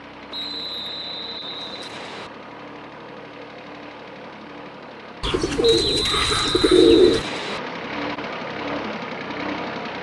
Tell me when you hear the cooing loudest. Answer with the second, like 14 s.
7 s.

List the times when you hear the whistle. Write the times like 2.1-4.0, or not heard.
0.3-2.3, 5.6-7.6.